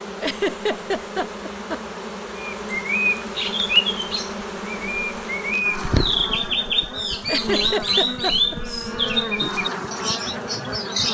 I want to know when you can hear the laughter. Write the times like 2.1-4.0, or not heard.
0.2-1.8, 7.2-8.6.